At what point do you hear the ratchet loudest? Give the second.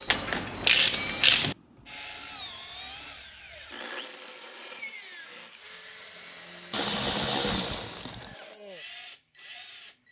1 s.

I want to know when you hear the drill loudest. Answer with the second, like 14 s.
1 s.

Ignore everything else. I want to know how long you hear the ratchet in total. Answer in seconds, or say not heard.
3 s.